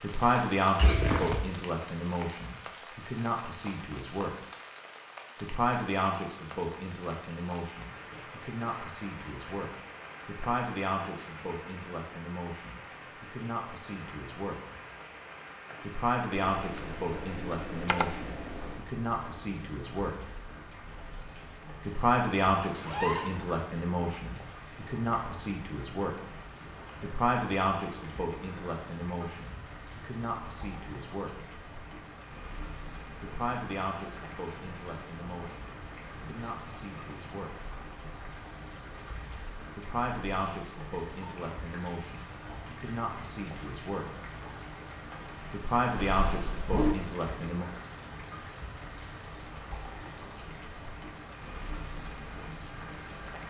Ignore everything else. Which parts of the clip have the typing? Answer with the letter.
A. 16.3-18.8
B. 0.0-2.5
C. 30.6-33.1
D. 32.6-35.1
A.